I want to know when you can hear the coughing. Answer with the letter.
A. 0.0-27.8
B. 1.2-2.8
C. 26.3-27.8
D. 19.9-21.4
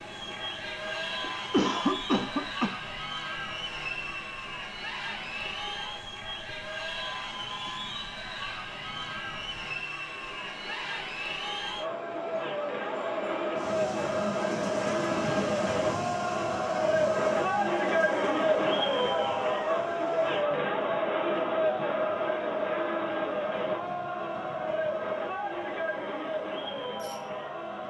B.